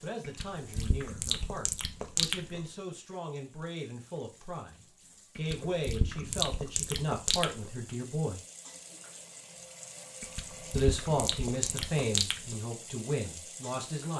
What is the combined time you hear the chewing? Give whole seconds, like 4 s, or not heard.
7 s.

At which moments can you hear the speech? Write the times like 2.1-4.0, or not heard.
0.0-8.4, 10.8-14.1.